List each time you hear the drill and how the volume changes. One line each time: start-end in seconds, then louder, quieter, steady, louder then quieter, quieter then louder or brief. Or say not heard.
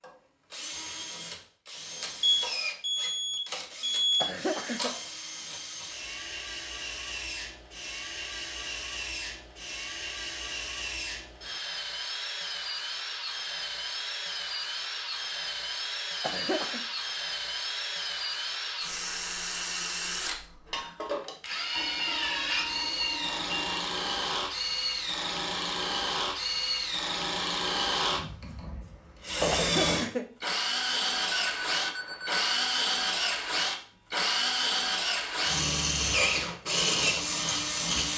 0.0-38.1 louder.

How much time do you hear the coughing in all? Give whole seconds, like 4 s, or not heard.
2 s.